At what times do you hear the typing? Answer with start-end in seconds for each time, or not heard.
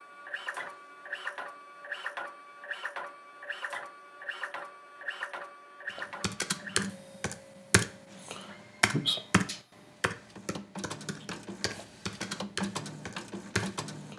6.0-14.1.